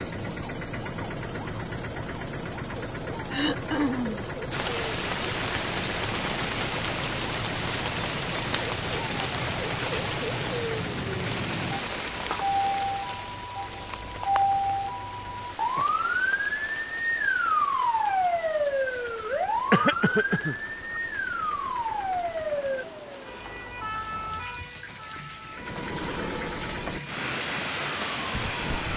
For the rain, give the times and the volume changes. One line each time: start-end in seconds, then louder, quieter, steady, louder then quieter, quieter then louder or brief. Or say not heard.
4.5-28.9 quieter then louder.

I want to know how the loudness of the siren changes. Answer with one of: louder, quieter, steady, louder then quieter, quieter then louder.
louder then quieter.